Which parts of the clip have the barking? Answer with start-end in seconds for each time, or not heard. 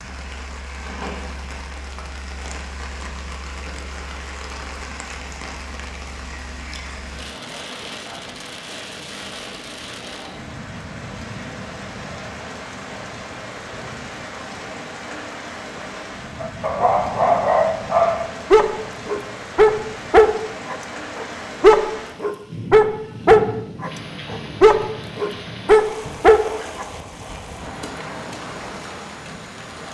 16.4-26.9.